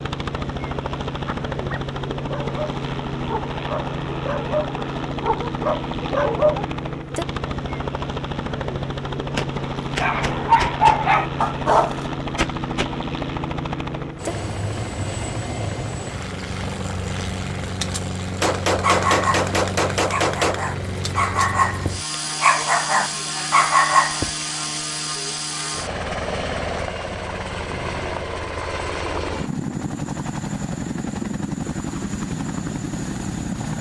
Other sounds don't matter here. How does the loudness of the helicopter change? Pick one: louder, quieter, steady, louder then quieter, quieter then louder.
steady.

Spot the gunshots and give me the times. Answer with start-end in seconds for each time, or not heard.
9.3-11.1, 12.3-13.0, 17.8-21.5.